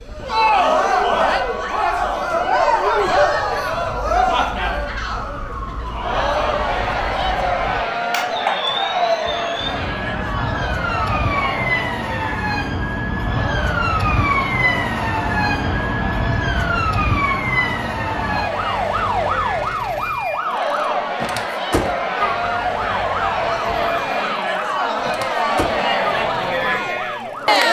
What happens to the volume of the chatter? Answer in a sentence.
The loudness of the chatter goes down, then up.